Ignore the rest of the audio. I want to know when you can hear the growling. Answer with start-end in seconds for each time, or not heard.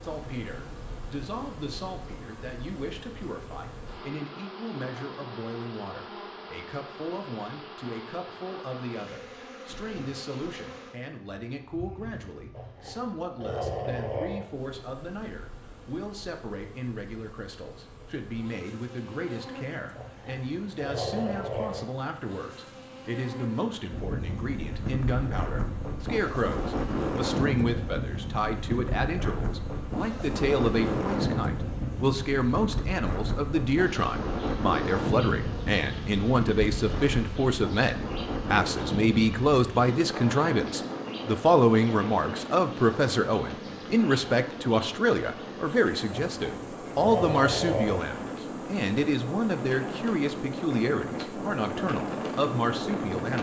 12.5-14.4, 19.9-21.8, 46.1-48.0.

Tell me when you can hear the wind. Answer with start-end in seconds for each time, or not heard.
23.9-53.3.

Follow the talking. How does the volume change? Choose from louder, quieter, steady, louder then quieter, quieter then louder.
louder.